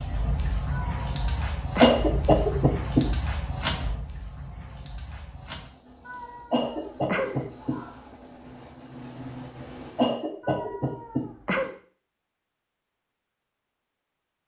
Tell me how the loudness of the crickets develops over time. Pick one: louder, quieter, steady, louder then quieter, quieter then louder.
quieter.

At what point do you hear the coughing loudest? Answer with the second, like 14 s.
2 s.